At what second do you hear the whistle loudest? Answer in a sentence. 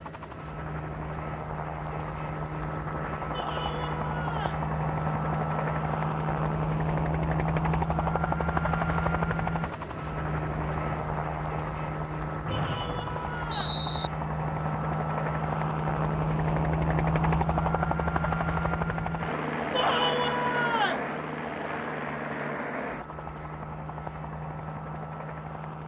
The loudest moment of the whistle is at 14 seconds.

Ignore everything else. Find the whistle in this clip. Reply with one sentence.
The whistle can be heard from 12.4 to 14.1 s.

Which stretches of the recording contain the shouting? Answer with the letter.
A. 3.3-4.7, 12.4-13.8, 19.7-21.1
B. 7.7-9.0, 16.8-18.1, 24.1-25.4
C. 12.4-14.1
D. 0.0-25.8
A.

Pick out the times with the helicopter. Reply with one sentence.
The helicopter can be heard from 0.0 to 25.8 s.